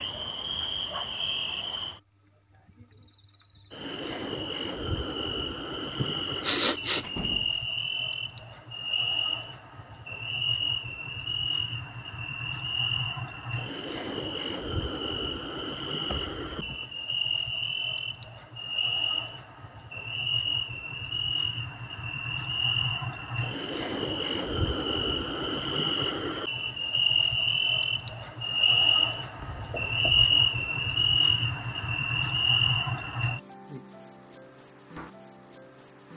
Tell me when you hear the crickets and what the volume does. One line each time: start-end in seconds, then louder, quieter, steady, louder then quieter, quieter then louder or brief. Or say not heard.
0.0-36.1 louder.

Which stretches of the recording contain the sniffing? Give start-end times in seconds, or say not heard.
6.0-7.0.